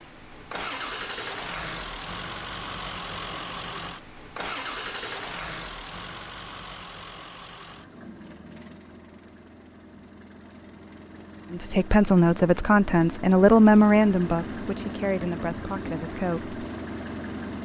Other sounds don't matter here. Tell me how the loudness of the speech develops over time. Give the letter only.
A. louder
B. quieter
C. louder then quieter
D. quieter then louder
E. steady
B.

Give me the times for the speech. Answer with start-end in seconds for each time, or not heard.
11.5-16.6.